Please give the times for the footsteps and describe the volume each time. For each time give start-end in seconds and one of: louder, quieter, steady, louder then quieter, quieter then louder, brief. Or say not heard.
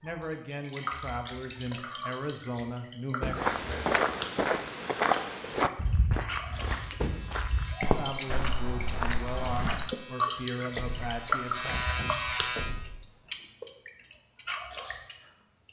3.2-9.9 quieter.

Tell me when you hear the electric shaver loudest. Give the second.
12 s.